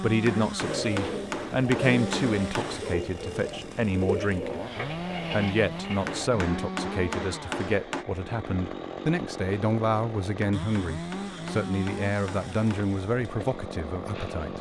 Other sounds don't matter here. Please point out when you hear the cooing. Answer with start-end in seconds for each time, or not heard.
0.6-6.3.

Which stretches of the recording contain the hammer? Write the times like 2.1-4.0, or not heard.
0.2-2.9, 6.0-8.1, 10.4-12.9.